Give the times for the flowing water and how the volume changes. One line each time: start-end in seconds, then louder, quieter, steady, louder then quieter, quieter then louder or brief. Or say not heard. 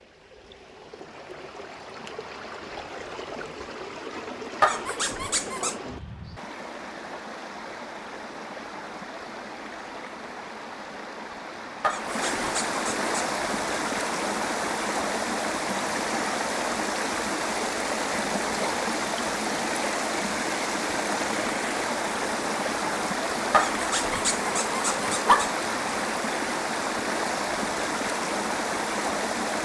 0.0-29.6 louder.